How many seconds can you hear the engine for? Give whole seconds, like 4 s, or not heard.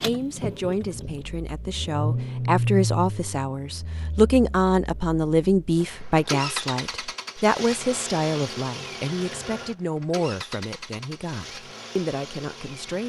13 s.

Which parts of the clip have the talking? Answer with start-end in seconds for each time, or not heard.
0.0-13.0.